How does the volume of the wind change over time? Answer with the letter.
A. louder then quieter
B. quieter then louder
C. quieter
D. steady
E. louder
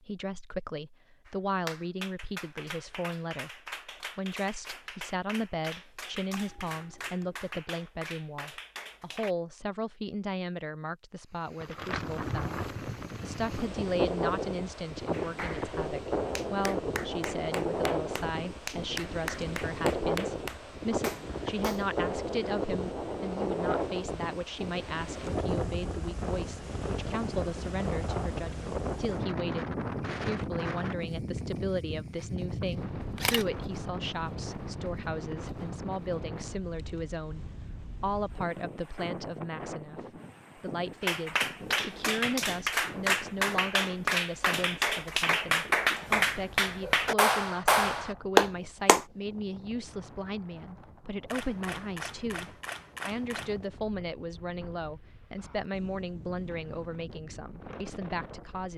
C.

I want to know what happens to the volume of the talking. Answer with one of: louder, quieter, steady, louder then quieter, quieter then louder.
steady.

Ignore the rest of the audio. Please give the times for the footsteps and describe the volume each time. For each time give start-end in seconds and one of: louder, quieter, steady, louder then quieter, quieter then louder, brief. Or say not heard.
not heard.